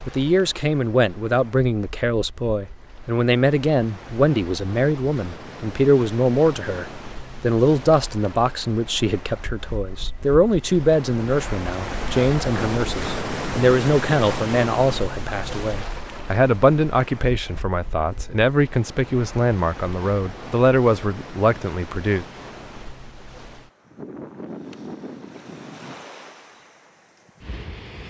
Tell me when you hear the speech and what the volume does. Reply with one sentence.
You can hear the speech from 0.1 to 22.2 s, at a steady volume.